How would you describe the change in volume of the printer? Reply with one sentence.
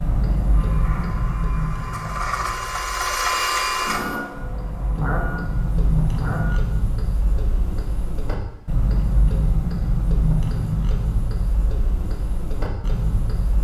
The loudness of the printer goes up, then down.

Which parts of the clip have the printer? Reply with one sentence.
You can hear the printer from 0.0 to 6.5 s.